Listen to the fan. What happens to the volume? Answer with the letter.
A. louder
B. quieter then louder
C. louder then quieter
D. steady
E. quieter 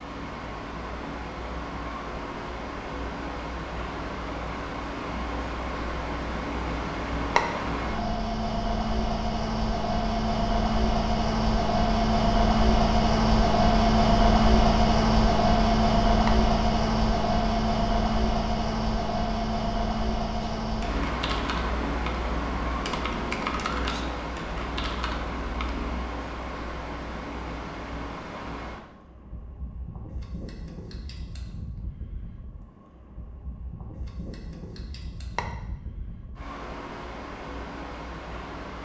C.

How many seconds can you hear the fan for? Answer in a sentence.
The fan can be heard for 39 seconds in total.